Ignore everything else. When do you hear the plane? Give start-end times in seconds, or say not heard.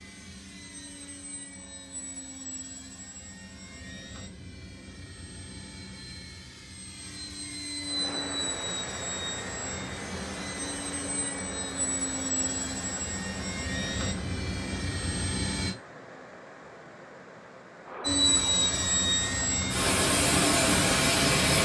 0.0-15.8, 18.0-21.6.